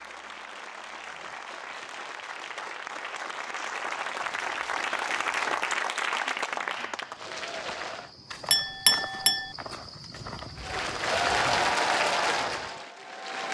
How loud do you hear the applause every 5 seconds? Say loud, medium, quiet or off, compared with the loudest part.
medium, loud, loud.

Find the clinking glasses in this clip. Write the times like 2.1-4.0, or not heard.
8.5-9.6.